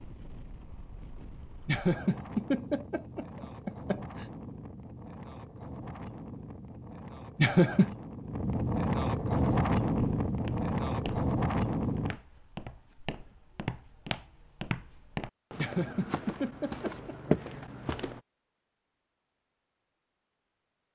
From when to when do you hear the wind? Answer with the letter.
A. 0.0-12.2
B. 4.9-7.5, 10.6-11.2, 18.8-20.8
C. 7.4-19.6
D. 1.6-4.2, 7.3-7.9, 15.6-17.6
A.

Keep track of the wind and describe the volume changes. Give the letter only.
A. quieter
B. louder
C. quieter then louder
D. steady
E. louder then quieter
B.